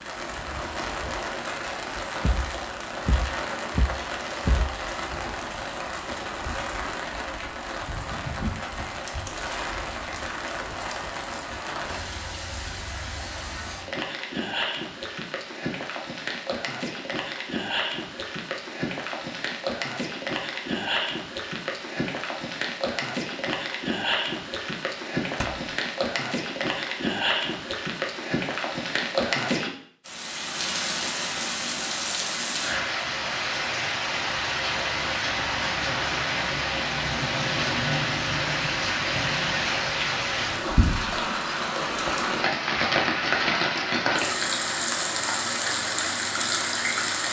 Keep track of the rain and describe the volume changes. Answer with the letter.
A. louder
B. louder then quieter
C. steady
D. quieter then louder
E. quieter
A.